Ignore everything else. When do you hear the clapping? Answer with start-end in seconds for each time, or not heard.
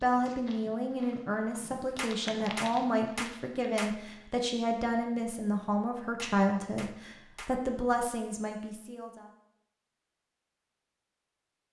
1.9-4.0, 6.2-7.6.